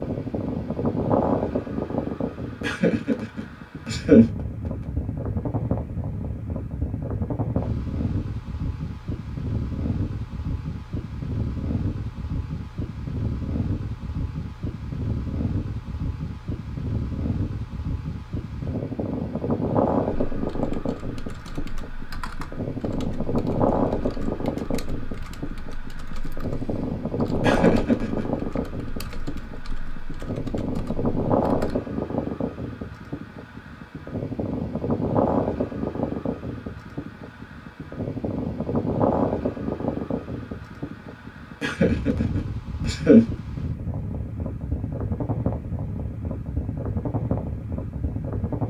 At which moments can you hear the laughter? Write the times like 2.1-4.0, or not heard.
2.6-4.2, 27.4-28.2, 41.6-43.2.